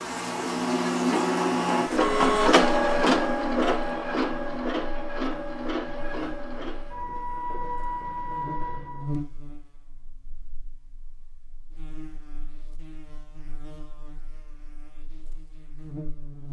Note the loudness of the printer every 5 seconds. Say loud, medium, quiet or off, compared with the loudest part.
loud, medium, off, off.